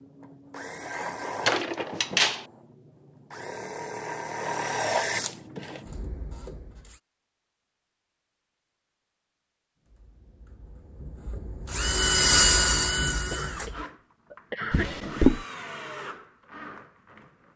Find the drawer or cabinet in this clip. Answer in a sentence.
You can hear the drawer or cabinet from 1.4 to 2.5 s and from 14.7 to 15.4 s.